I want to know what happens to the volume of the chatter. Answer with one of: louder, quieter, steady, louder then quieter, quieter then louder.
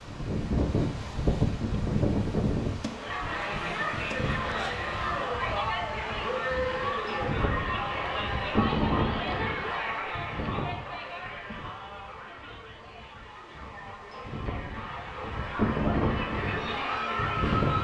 quieter then louder.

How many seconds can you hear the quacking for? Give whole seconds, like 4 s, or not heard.
not heard.